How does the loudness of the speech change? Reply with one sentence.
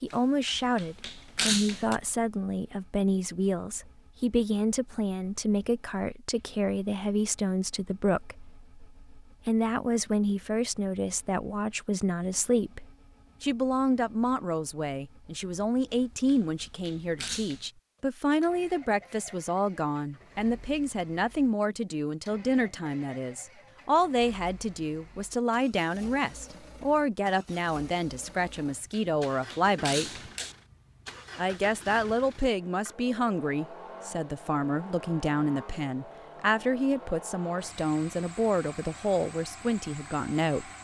The loudness of the speech stays about the same.